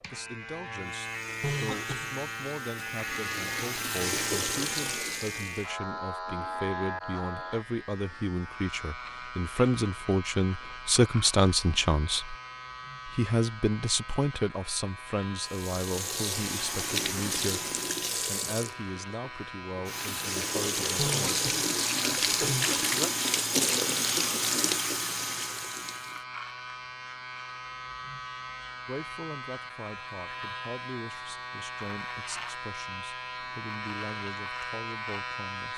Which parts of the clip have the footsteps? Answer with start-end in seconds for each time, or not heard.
not heard.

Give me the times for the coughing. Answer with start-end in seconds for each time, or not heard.
1.4-2.1, 20.9-22.9.